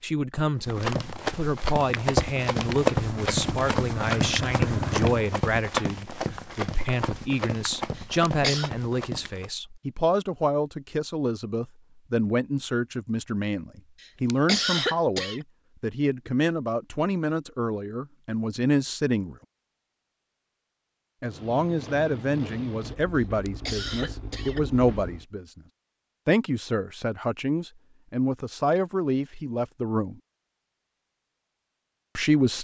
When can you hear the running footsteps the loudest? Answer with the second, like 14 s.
3 s.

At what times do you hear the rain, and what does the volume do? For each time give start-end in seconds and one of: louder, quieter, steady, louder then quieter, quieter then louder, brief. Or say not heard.
not heard.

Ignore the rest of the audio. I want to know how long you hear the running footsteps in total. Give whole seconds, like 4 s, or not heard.
9 s.